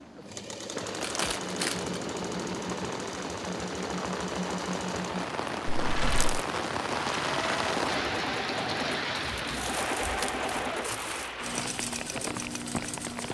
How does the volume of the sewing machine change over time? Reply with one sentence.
The volume of the sewing machine stays about the same.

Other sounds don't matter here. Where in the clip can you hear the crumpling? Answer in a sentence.
You can hear the crumpling from 1.0 to 2.0 s, from 5.7 to 6.5 s and from 9.4 to 11.3 s.